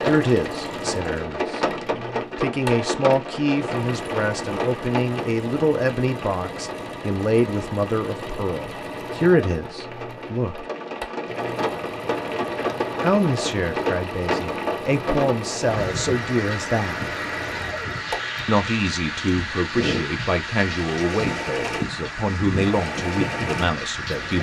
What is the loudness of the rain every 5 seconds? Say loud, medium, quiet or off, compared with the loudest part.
loud, medium, loud, loud, loud.